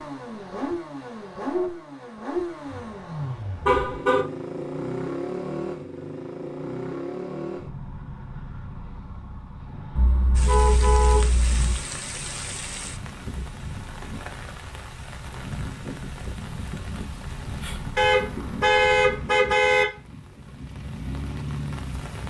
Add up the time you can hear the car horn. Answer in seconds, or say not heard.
5 s.